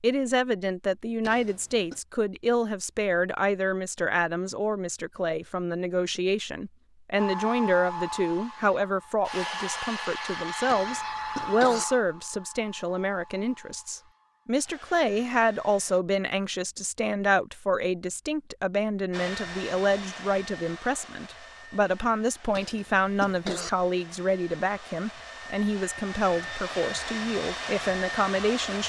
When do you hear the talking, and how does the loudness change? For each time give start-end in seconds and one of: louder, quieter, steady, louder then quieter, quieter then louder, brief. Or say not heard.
0.0-28.8 steady.